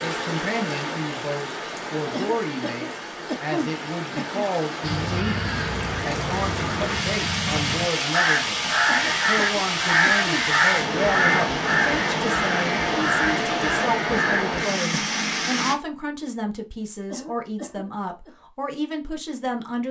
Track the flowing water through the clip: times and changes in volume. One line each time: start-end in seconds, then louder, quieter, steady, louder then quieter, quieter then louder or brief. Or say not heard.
0.0-15.8 louder.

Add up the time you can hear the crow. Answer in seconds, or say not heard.
10 s.